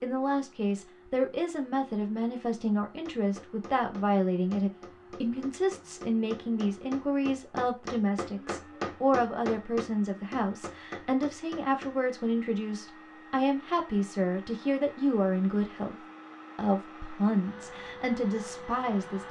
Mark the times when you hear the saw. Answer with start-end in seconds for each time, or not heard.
not heard.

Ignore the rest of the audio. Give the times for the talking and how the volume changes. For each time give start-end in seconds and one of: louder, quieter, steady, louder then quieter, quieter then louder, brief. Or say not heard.
0.0-15.9 steady
16.6-19.2 brief.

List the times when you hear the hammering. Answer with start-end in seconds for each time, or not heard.
3.0-12.0.